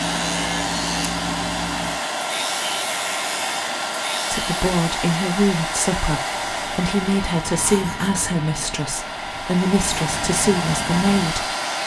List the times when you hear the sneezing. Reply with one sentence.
The sneezing can't be heard in this clip.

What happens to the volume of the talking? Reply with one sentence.
The volume of the talking stays about the same.